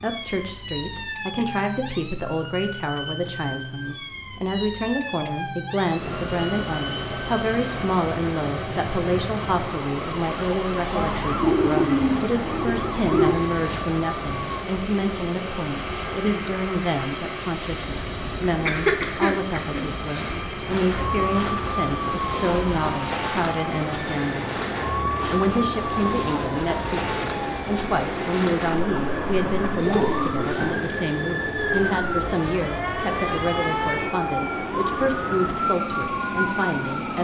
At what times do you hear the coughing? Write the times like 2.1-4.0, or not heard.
18.6-20.4.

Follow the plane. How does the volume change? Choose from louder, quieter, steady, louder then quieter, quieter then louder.
steady.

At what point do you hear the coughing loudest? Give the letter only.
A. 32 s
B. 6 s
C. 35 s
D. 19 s
D.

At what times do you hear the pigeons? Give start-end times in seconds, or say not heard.
10.9-13.4, 28.8-31.1.